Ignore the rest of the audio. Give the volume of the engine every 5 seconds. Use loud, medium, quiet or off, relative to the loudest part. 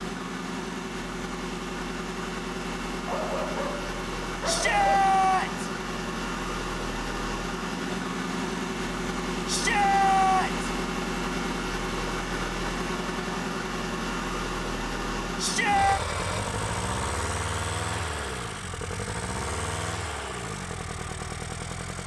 loud, loud, loud, loud, medium.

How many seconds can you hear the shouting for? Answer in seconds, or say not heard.
3 s.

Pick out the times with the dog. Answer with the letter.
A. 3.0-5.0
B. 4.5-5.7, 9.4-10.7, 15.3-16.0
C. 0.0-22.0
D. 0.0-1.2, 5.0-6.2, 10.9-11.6
A.